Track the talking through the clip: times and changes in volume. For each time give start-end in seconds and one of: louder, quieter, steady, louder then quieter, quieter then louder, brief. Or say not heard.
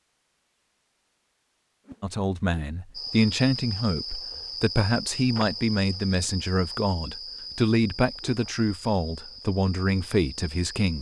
2.0-10.9 steady.